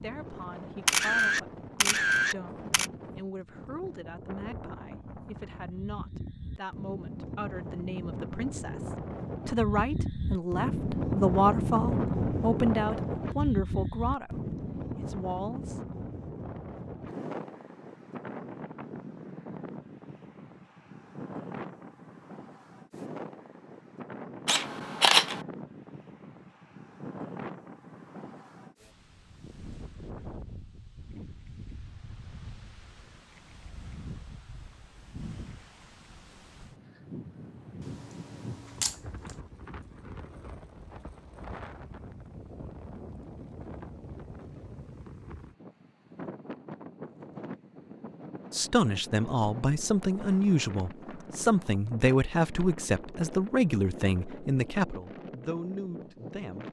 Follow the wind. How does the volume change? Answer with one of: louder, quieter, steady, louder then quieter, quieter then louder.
quieter.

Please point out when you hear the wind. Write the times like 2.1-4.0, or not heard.
0.0-56.6.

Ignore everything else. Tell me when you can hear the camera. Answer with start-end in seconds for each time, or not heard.
0.8-2.9, 24.4-25.4, 37.8-39.4.